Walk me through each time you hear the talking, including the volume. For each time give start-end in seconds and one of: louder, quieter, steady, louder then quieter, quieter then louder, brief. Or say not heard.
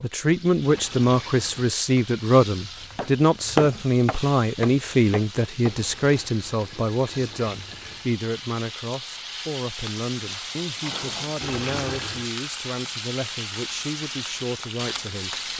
0.0-15.5 quieter.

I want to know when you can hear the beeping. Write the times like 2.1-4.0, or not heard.
not heard.